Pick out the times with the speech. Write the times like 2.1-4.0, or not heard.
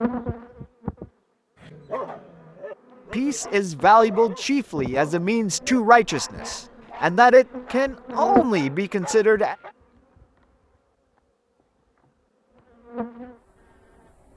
3.1-9.6.